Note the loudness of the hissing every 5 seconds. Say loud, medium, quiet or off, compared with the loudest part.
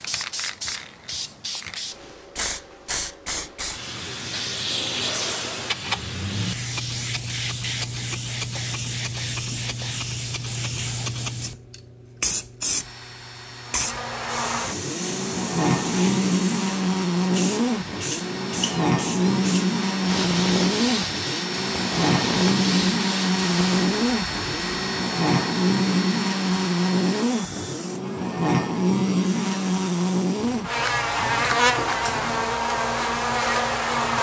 loud, loud, loud, medium, loud, off, off.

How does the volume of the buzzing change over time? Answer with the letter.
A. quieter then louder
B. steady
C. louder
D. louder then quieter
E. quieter
B.